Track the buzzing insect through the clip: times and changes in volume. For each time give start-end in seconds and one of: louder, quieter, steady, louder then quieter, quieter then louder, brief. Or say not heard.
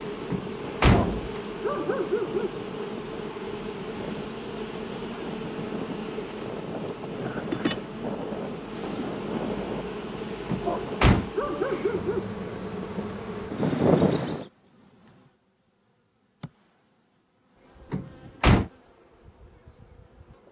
0.0-20.4 quieter.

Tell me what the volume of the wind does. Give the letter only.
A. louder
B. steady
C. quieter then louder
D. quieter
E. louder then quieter
A.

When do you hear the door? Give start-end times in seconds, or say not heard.
0.3-1.4, 10.5-11.3, 17.9-18.7.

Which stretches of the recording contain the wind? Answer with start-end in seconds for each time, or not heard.
0.0-14.4.